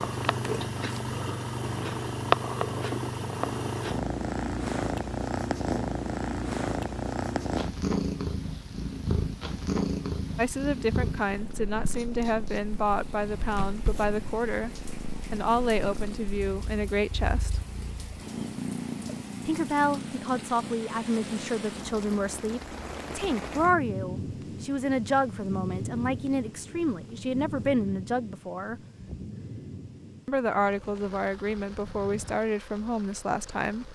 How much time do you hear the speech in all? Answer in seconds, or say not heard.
20 s.